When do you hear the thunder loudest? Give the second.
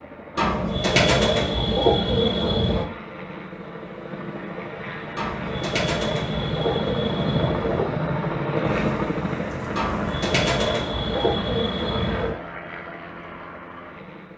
9 s.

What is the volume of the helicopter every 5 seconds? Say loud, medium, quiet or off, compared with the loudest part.
medium, loud, medium.